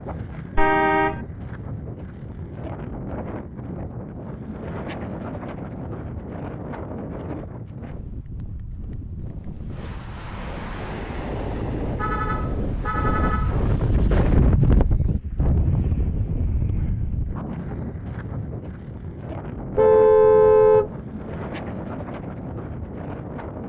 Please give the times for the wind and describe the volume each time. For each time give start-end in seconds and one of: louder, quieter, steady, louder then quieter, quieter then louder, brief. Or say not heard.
0.0-23.6 louder then quieter.